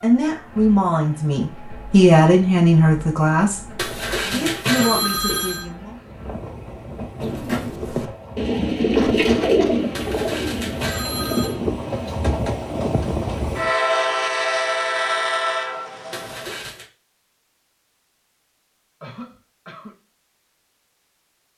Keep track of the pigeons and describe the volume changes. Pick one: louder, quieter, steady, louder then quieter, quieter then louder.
louder then quieter.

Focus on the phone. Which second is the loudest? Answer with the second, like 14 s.
5 s.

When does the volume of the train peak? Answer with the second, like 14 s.
14 s.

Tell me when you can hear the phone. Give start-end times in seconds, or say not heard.
3.8-5.7, 9.9-11.6, 16.1-16.9.